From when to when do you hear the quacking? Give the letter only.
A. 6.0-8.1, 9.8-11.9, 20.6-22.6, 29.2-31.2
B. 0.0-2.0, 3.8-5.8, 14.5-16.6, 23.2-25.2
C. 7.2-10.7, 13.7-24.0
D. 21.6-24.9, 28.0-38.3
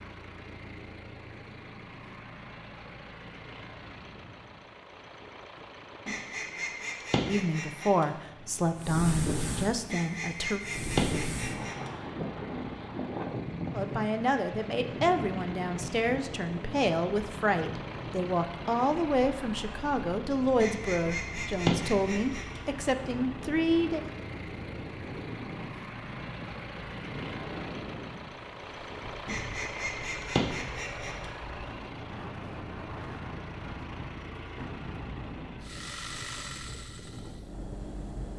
A.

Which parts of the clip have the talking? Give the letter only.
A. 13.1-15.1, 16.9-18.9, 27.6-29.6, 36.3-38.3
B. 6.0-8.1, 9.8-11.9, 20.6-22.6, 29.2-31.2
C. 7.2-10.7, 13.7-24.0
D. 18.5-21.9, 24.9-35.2
C.